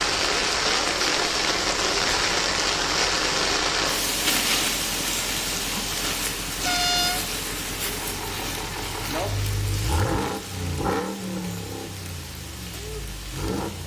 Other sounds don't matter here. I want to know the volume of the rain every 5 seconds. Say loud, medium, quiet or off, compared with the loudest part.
loud, medium, quiet.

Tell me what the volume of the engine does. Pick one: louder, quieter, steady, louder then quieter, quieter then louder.
louder then quieter.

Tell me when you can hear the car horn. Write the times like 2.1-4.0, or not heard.
6.7-7.3.